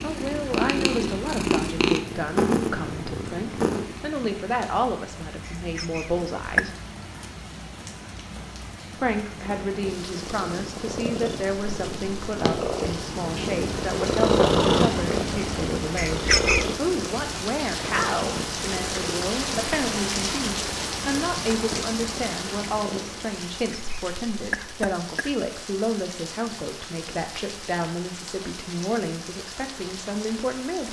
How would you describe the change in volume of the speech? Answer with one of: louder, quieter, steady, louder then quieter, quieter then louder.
steady.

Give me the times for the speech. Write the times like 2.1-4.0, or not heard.
0.0-6.8, 8.9-30.8.